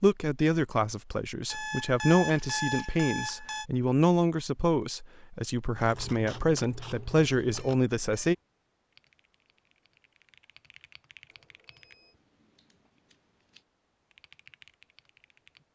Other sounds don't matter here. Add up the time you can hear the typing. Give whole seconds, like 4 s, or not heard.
5 s.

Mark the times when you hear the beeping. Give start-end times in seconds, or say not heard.
1.4-3.6, 7.5-8.3, 11.2-12.2.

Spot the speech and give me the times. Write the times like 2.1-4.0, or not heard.
0.0-8.3.